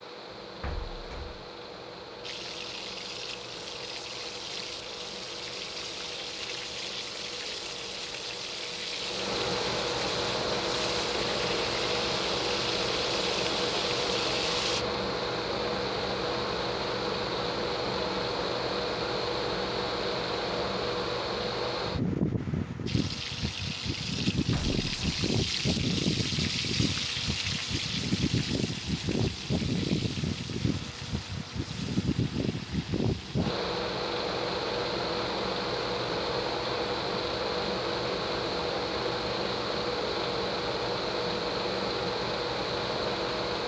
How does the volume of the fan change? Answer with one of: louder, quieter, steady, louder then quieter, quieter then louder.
louder.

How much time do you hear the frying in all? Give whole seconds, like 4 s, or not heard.
23 s.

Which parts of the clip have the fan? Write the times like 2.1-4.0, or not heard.
0.0-43.6.